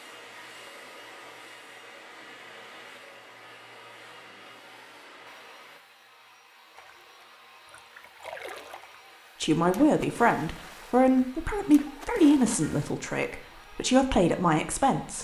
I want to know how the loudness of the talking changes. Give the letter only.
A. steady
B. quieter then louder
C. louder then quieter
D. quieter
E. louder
B.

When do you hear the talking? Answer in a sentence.
You can hear the talking from 9.4 to 15.1 s.